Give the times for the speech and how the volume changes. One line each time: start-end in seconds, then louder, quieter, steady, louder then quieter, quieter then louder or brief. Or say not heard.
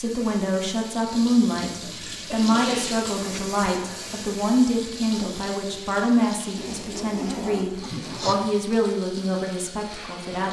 0.0-10.4 steady.